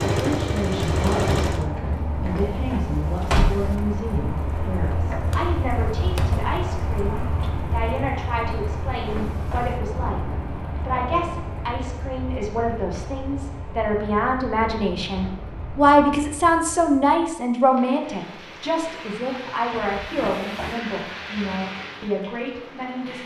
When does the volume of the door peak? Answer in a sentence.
The loudest moment of the door is at 3 seconds.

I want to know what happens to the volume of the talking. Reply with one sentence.
The volume of the talking goes up, then down.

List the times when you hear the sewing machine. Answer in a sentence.
You can hear the sewing machine from 0.0 to 1.7 s.